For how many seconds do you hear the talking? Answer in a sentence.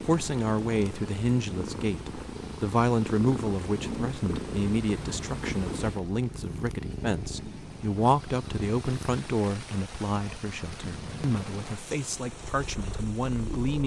The talking can be heard for 14 seconds in total.